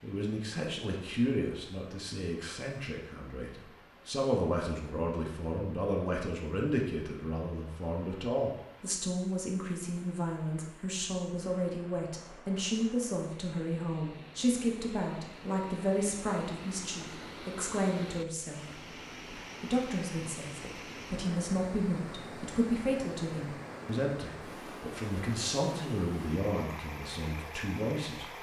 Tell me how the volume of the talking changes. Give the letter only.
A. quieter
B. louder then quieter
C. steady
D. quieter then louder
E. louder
C.